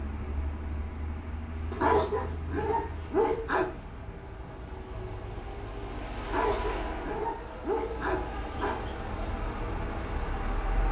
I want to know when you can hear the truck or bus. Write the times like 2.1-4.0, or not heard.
0.0-10.8.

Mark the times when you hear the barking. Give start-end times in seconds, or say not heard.
1.7-3.7, 6.2-8.9.